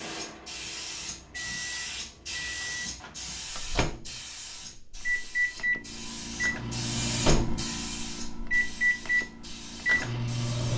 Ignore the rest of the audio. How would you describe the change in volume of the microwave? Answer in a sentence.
The loudness of the microwave goes up.